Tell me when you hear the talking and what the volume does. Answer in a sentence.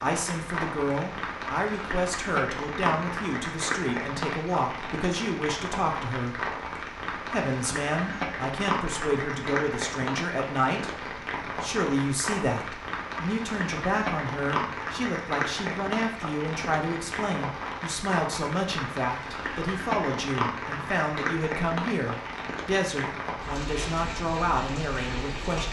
You can hear the talking from 0.0 to 25.6 s, at a steady volume.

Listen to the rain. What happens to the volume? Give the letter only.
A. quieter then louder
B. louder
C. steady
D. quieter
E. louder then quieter
C.